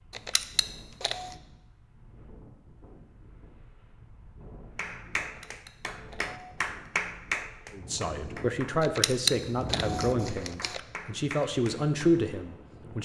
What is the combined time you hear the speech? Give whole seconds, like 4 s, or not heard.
5 s.